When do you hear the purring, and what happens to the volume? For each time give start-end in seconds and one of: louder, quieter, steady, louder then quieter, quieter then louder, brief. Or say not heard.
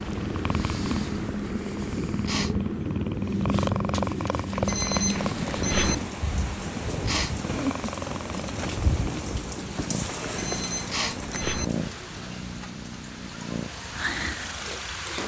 0.0-15.2 quieter.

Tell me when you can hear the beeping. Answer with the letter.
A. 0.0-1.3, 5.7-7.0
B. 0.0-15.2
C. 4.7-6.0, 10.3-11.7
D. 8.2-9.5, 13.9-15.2
C.